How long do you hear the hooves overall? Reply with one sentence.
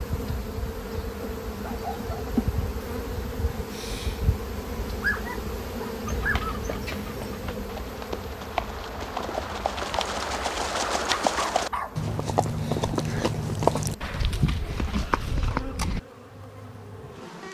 The hooves can be heard for 10 seconds in total.